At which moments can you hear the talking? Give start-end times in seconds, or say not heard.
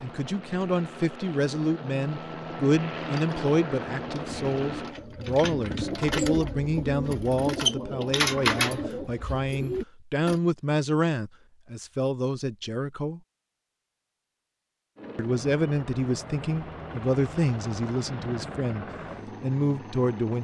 0.0-13.2, 15.2-20.4.